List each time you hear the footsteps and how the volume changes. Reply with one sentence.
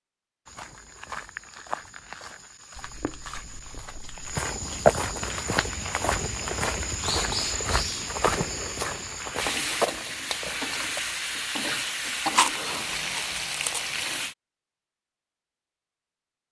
You can hear the footsteps from 0.5 to 11.0 s, getting louder then quieter.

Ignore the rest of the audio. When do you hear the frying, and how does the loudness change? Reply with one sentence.
The frying can be heard from 5.2 to 14.3 s, getting louder.